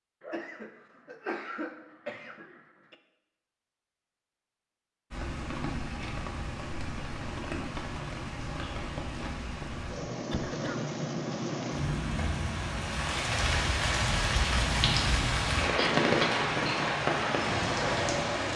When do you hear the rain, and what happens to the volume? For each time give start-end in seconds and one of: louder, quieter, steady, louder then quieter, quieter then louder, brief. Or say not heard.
5.1-18.5 louder.